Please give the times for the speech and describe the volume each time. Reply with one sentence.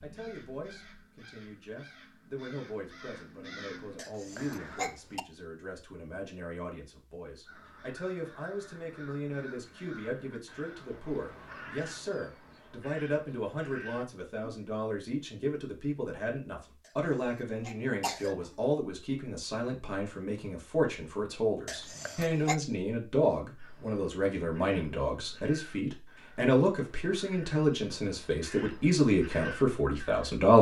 You can hear the speech from 0.0 to 30.5 s, getting louder.